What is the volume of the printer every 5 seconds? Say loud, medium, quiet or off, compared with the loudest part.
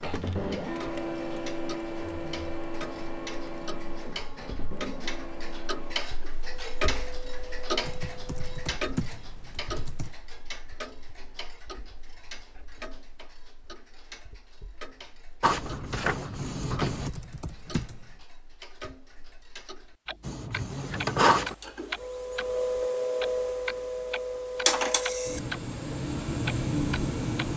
medium, quiet, off, loud, loud, loud.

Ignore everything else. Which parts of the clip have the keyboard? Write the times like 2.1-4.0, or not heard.
7.8-10.2, 16.9-18.2.